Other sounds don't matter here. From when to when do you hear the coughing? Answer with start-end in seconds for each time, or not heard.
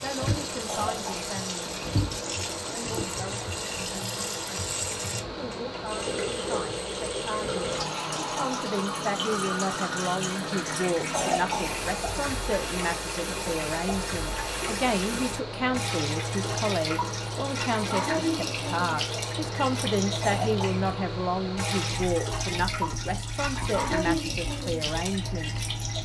0.7-1.3, 11.1-11.8, 20.2-20.9.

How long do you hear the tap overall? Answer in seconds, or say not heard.
26 s.